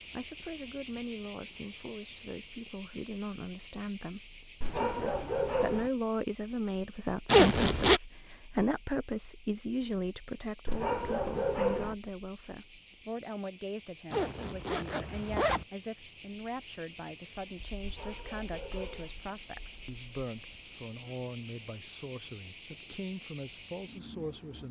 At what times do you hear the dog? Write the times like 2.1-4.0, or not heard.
4.6-5.9, 10.7-11.9, 17.8-19.1.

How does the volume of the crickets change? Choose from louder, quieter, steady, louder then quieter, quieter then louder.
quieter then louder.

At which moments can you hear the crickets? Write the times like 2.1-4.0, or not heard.
0.0-24.6.